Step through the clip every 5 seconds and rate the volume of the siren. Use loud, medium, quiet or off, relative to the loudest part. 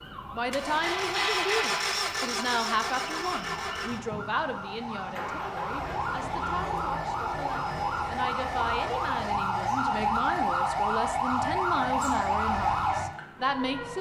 quiet, loud, loud.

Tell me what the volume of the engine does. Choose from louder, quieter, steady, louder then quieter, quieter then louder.
quieter.